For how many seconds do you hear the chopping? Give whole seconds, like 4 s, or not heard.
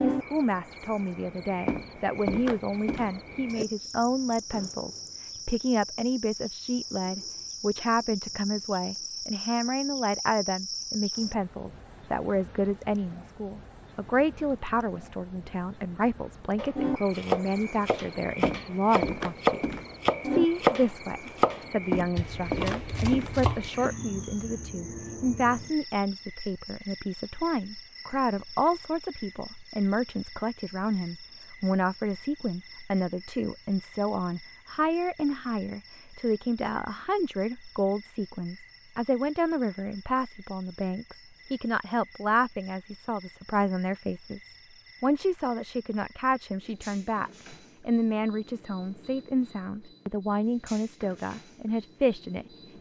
7 s.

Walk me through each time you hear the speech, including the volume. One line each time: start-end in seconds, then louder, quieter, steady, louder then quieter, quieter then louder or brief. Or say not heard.
0.0-52.7 steady.